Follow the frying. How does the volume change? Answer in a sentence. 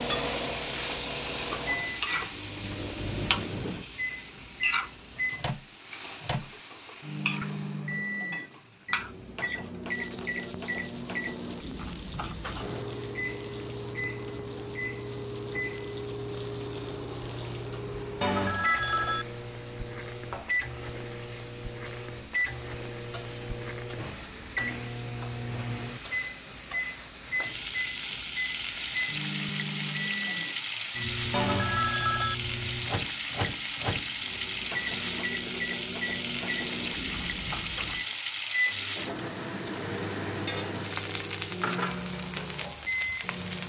The volume of the frying goes down, then up.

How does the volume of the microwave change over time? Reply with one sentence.
The volume of the microwave stays about the same.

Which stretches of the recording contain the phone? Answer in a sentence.
The phone can be heard from 18.2 to 19.2 s and from 31.3 to 32.4 s.